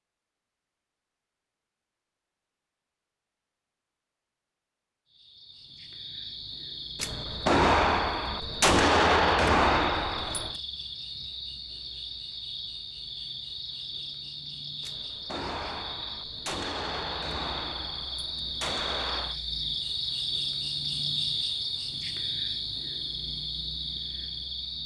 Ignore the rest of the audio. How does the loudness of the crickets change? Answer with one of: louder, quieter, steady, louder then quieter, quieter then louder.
louder.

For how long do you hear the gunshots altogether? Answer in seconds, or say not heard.
8 s.